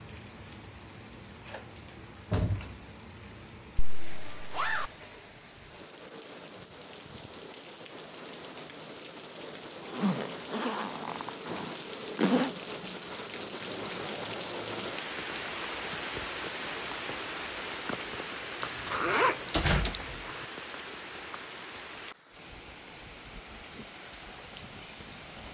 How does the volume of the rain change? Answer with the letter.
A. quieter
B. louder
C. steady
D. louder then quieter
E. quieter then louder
D.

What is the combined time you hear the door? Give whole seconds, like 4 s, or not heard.
3 s.